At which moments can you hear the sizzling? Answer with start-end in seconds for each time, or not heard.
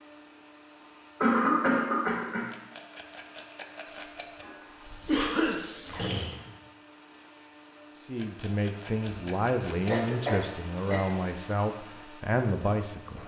3.9-6.1.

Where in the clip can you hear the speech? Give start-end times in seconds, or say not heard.
8.0-13.2.